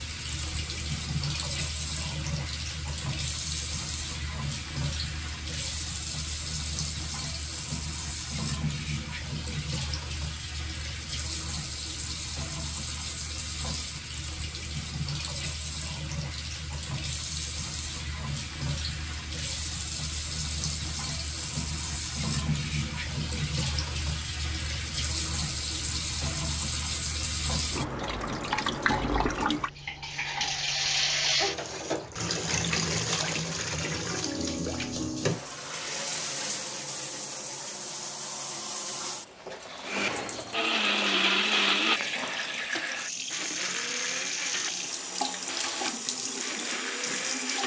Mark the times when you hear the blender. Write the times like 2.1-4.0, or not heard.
39.8-47.6.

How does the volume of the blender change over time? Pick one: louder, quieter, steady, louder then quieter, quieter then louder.
quieter.